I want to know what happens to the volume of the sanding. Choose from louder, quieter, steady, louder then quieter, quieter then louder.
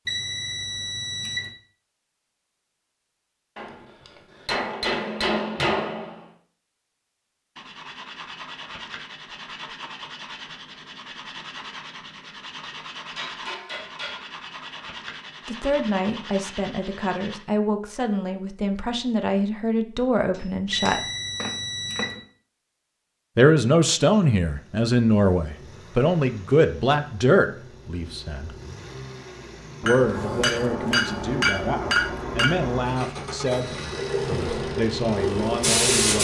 steady.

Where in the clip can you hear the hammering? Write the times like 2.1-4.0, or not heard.
3.5-6.2, 13.2-14.2, 20.4-22.2, 29.8-32.8.